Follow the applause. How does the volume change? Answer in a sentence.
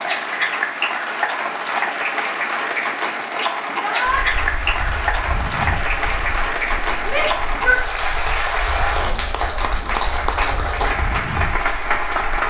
The loudness of the applause stays about the same.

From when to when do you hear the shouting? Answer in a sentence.
The shouting can be heard from 3.7 to 4.2 s and from 7.0 to 7.8 s.